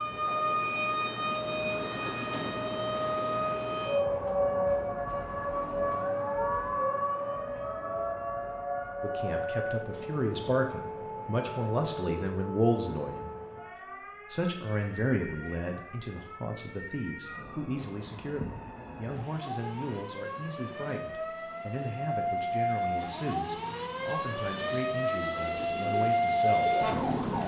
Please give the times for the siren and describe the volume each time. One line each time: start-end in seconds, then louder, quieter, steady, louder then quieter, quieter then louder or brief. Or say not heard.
0.0-27.4 quieter then louder.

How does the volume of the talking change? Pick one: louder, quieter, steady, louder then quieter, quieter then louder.
quieter.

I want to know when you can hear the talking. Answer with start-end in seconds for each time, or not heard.
9.0-13.3, 14.3-26.9.